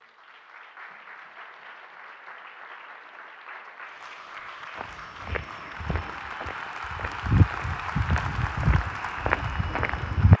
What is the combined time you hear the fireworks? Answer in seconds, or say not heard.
not heard.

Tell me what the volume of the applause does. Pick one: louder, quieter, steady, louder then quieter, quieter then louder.
louder.